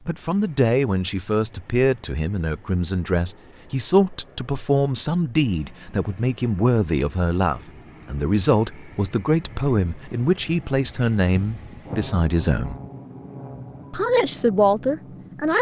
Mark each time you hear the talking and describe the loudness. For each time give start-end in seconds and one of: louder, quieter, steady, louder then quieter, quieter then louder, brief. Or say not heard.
0.1-12.8 steady
13.9-15.5 brief.